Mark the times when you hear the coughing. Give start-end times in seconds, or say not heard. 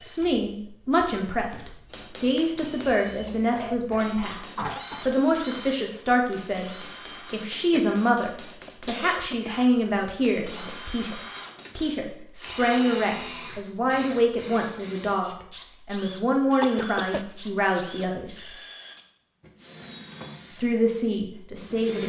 3.5-5.0, 7.7-9.7, 16.6-17.4.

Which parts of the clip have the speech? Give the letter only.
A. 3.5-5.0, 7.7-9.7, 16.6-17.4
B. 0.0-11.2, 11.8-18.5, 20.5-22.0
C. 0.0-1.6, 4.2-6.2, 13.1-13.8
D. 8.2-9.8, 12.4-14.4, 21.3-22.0
B.